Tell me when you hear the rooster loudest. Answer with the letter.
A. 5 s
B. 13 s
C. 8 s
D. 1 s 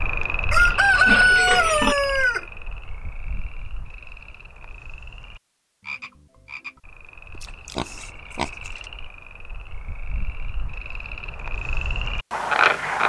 D.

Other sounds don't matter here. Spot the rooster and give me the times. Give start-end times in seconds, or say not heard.
0.5-2.5.